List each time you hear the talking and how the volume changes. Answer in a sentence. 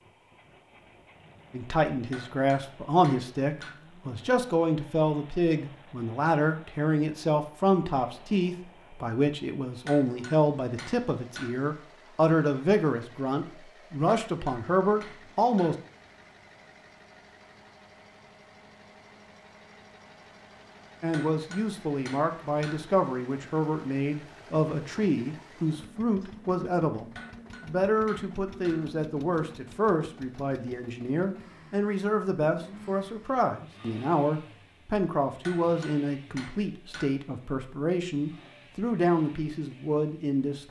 You can hear the talking from 1.5 to 15.8 s, at a steady volume; and from 21.0 to 40.6 s, at a steady volume.